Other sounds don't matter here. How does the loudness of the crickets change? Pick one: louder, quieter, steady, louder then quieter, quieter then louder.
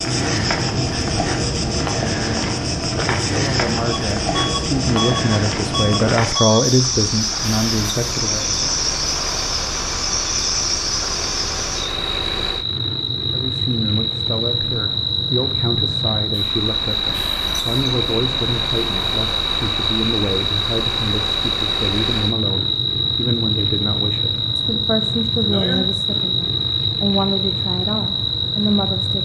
steady.